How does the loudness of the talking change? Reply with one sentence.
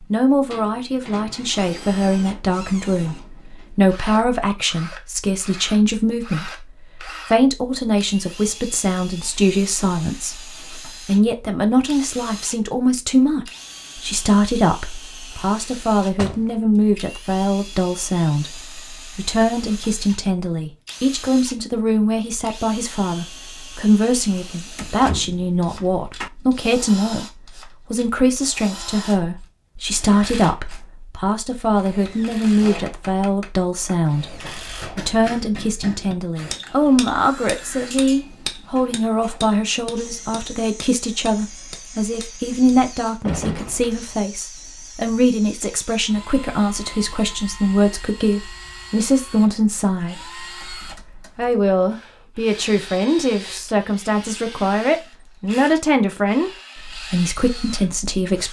The loudness of the talking stays about the same.